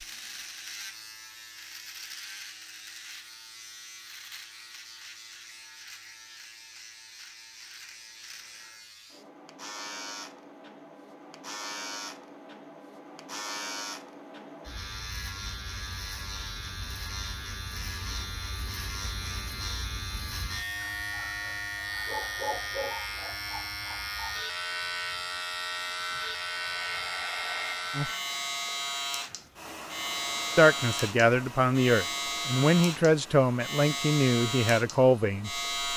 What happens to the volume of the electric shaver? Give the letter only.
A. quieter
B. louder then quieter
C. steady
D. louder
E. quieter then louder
D.